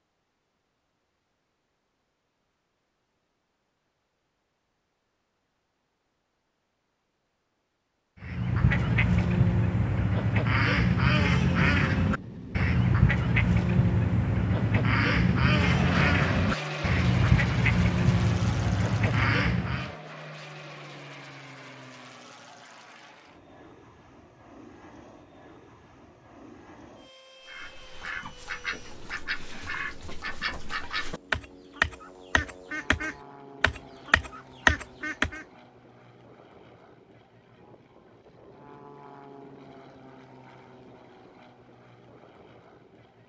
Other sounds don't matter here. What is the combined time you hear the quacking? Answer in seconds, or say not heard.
20 s.